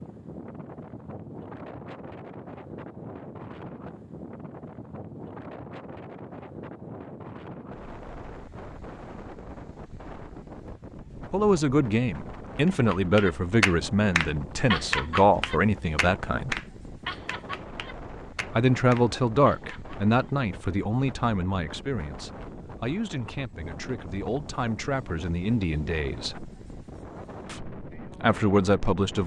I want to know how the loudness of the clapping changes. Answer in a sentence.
The volume of the clapping goes down.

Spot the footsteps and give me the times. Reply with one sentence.
The footsteps can't be heard in this clip.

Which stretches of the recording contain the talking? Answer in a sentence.
You can hear the talking from 11.3 to 16.6 s, from 18.6 to 26.5 s and from 27.4 to 29.2 s.